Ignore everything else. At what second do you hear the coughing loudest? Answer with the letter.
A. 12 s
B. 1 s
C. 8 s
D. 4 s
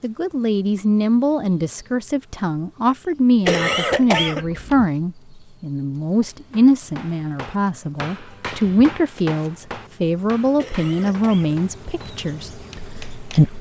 D.